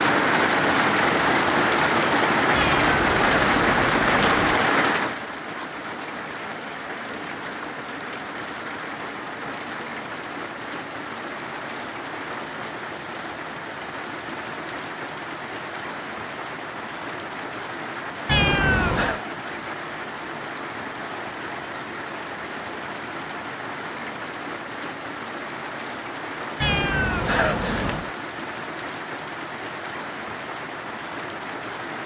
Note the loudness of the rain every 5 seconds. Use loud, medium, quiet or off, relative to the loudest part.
loud, quiet, quiet, quiet, quiet, quiet, quiet.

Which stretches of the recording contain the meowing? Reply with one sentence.
You can hear the meowing from 2.5 to 4.5 s, from 18.2 to 19.2 s and from 26.6 to 28.1 s.